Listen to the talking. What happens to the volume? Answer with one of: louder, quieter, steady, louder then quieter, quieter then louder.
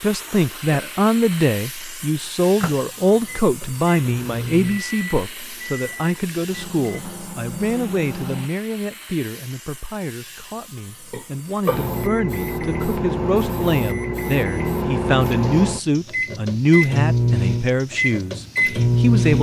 quieter then louder.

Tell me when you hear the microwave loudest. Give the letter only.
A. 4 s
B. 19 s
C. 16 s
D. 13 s
B.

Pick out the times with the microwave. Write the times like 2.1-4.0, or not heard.
2.6-8.5, 11.7-19.3.